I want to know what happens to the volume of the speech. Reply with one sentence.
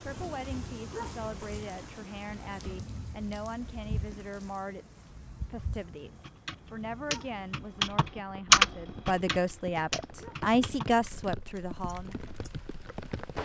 The volume of the speech goes up.